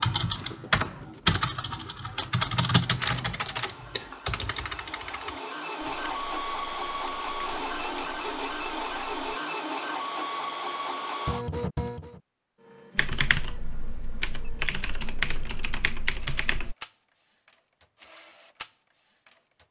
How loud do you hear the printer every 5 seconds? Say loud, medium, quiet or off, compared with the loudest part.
quiet, loud, loud, quiet.